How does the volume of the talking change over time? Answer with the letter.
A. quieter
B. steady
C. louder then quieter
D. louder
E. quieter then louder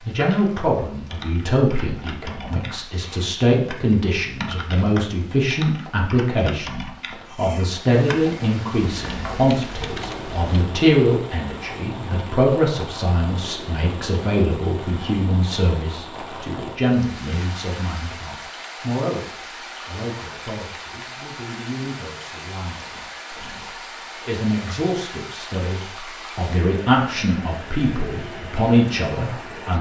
E.